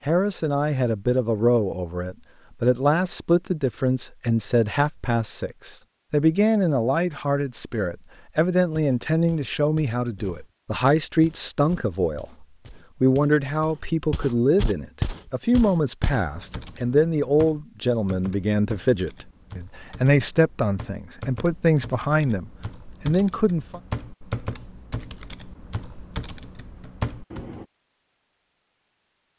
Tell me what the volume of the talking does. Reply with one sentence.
The volume of the talking stays about the same.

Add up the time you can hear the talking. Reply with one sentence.
The talking can be heard for 24 seconds in total.